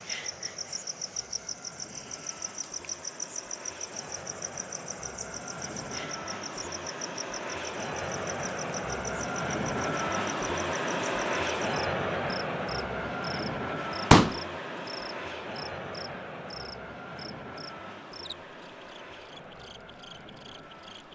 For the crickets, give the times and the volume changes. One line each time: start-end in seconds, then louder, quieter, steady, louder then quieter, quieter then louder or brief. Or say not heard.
0.0-21.1 quieter.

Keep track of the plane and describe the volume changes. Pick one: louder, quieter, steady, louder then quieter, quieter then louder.
louder then quieter.